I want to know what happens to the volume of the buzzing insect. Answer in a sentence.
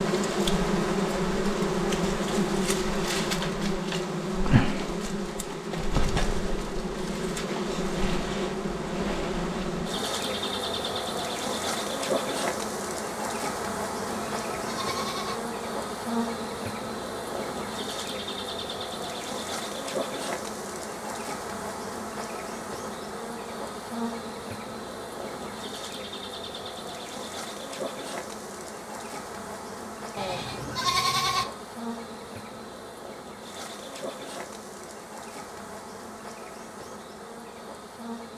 The loudness of the buzzing insect goes down.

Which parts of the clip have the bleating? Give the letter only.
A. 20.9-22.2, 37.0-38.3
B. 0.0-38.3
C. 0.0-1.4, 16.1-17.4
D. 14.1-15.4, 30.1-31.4
D.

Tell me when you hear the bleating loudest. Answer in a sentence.
The volume of the bleating peaks at 31 seconds.